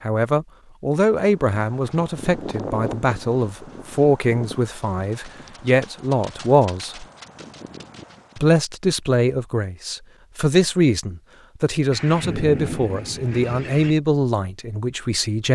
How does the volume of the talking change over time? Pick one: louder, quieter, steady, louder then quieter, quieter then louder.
steady.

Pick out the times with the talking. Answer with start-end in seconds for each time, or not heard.
0.0-7.0, 8.3-15.5.